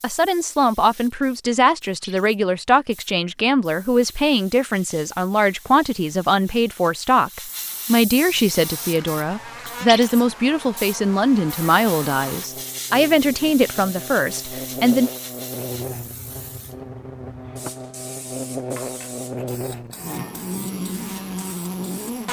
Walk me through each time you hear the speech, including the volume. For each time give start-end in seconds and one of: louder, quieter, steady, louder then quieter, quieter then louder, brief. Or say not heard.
0.0-15.1 steady.